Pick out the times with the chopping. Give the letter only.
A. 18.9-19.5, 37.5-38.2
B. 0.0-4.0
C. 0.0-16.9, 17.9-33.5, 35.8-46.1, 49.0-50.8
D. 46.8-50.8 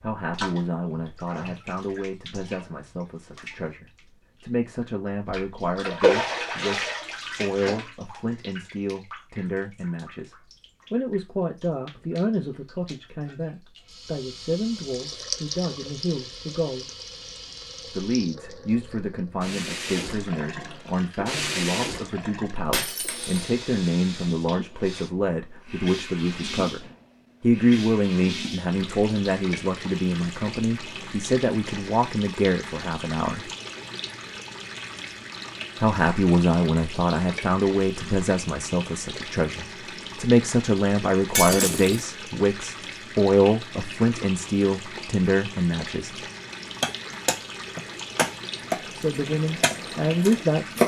D.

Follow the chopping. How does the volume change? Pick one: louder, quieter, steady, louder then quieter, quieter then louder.
quieter.